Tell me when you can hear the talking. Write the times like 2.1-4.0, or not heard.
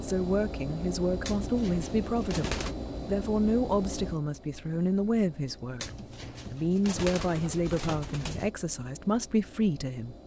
0.0-5.9, 6.5-10.2.